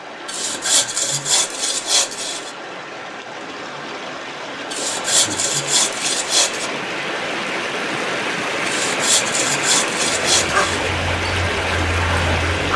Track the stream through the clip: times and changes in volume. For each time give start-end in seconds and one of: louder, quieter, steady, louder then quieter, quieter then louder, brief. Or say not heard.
0.0-12.7 louder.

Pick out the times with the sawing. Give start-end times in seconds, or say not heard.
0.2-2.5, 4.7-6.7, 8.7-10.9.